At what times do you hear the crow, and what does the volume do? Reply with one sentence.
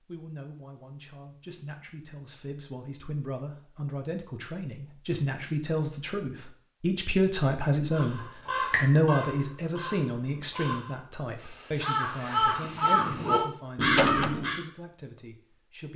You can hear the crow from 7.9 to 14.6 s, getting quieter then louder.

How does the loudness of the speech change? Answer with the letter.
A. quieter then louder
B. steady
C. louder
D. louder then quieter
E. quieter
D.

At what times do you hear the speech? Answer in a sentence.
The speech can be heard from 0.0 to 15.9 s.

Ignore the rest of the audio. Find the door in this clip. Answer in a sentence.
The door can be heard from 13.9 to 14.3 s.